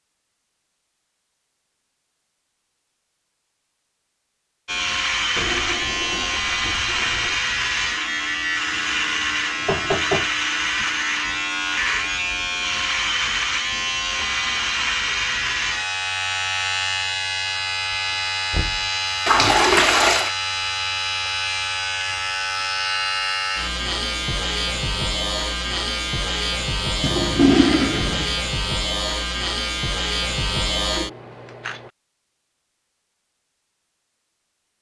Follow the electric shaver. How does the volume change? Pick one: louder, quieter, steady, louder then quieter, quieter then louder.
steady.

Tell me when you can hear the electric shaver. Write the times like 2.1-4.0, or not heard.
4.7-31.9.